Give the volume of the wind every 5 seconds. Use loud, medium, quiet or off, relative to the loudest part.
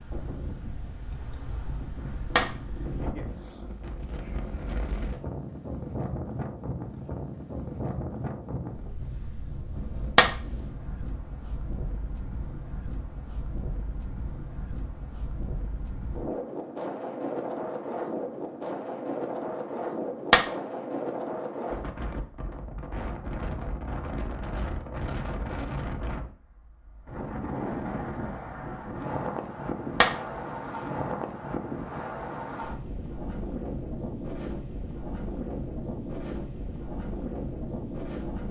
medium, loud, medium, loud, loud, loud, loud, loud.